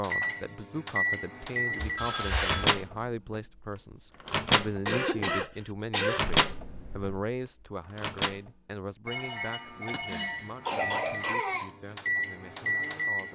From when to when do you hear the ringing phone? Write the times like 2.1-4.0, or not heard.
1.9-2.8, 6.2-7.2, 9.1-11.4.